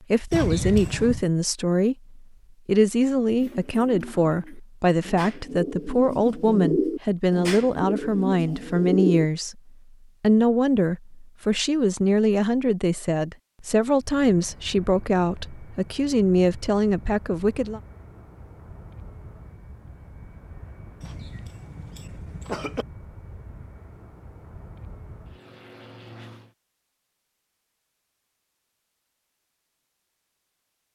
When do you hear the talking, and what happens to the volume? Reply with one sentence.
You can hear the talking from 0.1 to 9.6 s, at a steady volume; and from 10.2 to 17.8 s, at a steady volume.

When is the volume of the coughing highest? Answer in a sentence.
The loudest moment of the coughing is at 1 second.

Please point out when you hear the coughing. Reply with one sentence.
The coughing can be heard from 0.3 to 1.2 s and from 21.0 to 22.9 s.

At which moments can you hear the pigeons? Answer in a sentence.
You can hear the pigeons from 3.4 to 9.2 s.